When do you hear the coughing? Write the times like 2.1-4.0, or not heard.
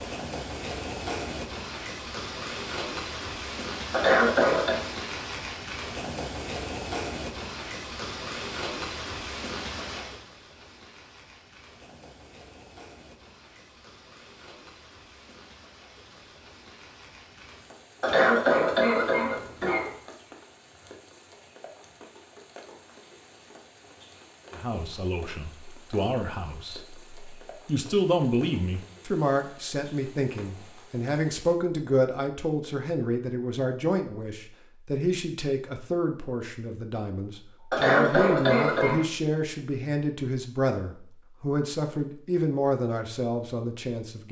3.9-4.8, 18.0-19.9, 37.7-39.0.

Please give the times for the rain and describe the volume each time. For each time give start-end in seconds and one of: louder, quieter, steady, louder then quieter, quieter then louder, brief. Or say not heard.
0.0-31.6 quieter.